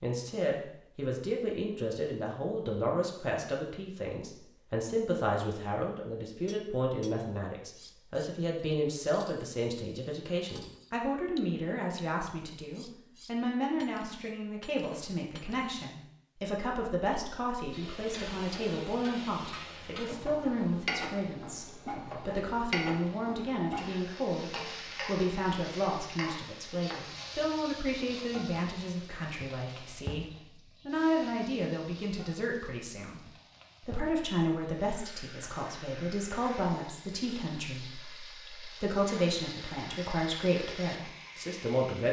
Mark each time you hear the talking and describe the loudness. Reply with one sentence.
You can hear the talking from 0.0 to 42.0 s, at a steady volume.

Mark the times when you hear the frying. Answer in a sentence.
The frying can be heard from 17.6 to 42.0 s.